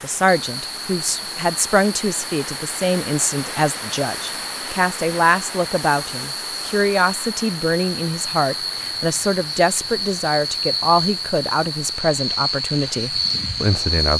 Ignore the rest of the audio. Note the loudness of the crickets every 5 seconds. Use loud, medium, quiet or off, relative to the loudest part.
medium, medium, loud.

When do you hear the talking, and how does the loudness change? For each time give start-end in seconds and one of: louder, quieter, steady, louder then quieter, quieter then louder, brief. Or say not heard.
0.0-14.1 steady.